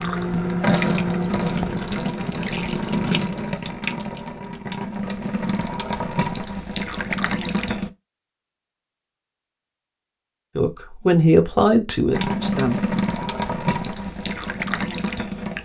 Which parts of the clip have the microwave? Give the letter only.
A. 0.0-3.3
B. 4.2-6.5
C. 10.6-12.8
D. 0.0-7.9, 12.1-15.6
A.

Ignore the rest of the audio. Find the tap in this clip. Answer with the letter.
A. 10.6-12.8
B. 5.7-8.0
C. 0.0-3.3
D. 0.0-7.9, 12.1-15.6
D.